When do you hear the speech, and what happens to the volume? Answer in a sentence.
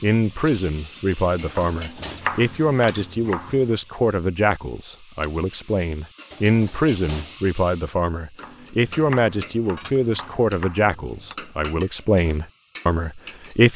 The speech can be heard from 0.0 to 13.7 s, at a steady volume.